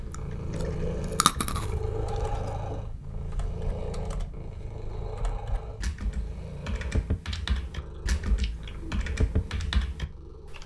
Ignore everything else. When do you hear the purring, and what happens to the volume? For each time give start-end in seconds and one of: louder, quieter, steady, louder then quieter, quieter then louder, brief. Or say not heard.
0.0-10.6 quieter.